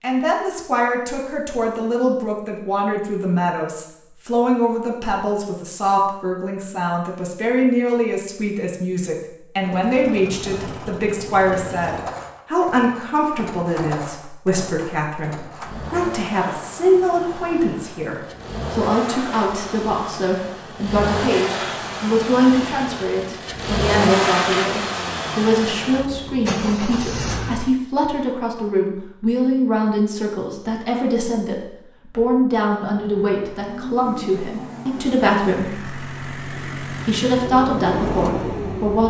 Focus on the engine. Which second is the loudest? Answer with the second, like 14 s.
24 s.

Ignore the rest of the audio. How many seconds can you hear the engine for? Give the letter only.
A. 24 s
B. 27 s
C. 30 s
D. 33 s
A.